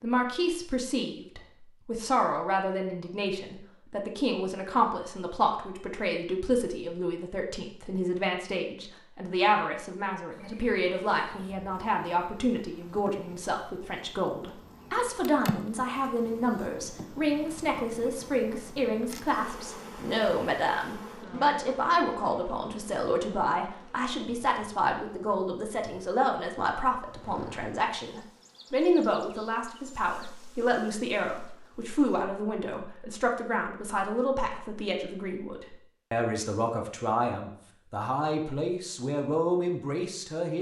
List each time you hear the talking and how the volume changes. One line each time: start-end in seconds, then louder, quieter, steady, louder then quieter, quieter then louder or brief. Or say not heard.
0.0-40.5 steady.